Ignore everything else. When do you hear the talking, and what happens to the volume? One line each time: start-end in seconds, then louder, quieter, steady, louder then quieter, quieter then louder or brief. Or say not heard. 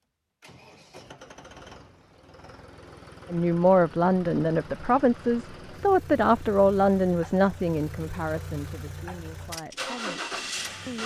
3.3-11.0 quieter.